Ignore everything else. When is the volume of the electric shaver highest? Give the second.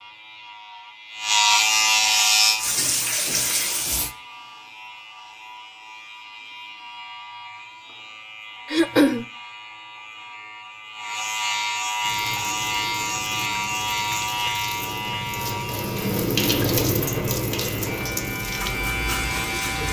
2 s.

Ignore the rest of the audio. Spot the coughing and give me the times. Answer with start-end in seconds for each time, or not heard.
8.7-9.2.